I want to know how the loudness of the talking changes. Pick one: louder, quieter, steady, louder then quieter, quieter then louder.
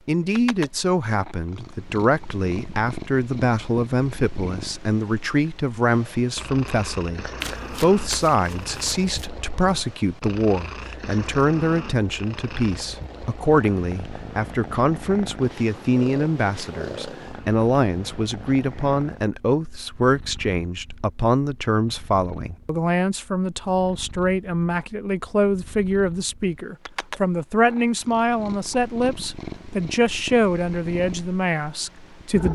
steady.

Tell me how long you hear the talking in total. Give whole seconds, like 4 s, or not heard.
32 s.